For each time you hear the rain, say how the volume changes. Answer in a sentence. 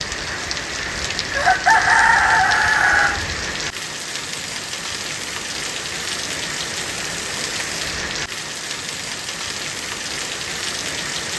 You can hear the rain from 0.0 to 11.3 s, at a steady volume.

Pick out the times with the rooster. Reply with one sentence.
The rooster can be heard from 0.2 to 3.2 s.